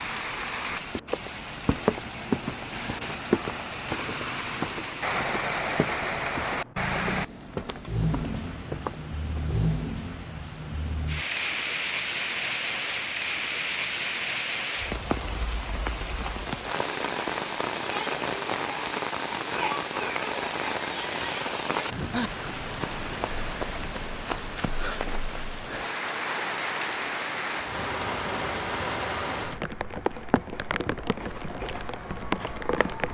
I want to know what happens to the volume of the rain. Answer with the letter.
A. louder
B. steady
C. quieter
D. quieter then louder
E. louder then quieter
B.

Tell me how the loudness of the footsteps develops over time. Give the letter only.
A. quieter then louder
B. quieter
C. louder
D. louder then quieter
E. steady
B.